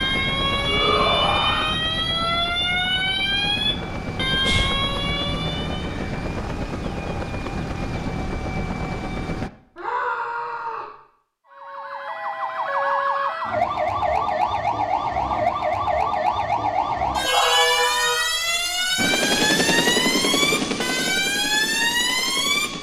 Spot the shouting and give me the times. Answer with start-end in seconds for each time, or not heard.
0.7-1.7, 9.8-10.9, 17.2-18.2.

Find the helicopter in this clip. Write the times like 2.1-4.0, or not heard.
0.0-9.5, 18.9-22.7.